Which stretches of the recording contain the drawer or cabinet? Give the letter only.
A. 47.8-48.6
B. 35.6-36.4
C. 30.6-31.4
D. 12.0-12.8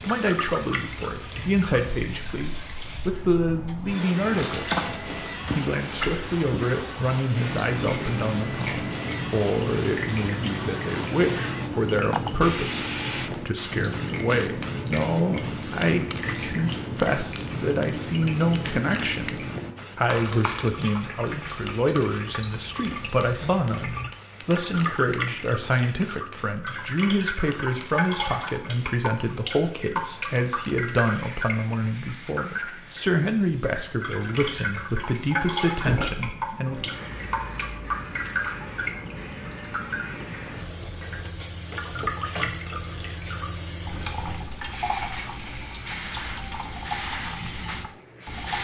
B.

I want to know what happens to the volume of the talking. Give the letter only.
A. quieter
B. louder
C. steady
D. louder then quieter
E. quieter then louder
C.